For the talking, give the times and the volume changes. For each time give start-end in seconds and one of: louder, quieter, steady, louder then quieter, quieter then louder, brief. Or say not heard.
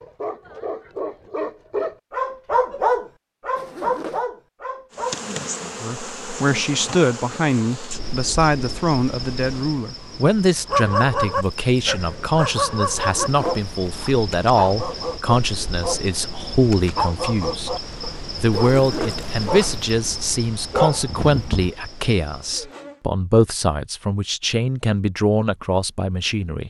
5.8-26.6 steady.